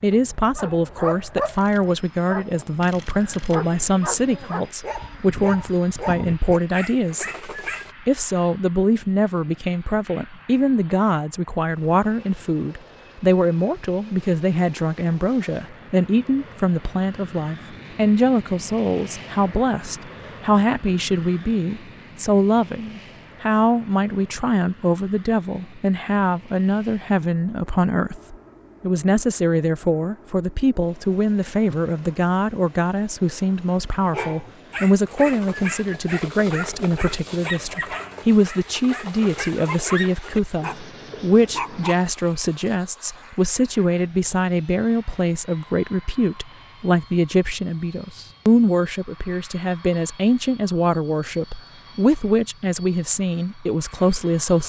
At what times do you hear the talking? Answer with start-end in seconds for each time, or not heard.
0.0-54.6.